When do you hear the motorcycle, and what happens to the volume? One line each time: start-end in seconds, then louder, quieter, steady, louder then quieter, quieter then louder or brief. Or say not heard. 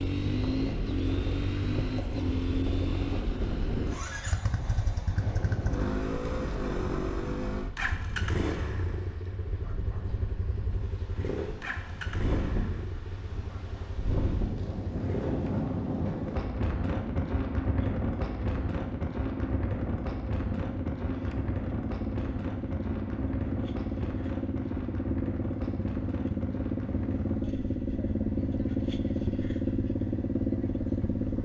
0.0-31.4 quieter then louder.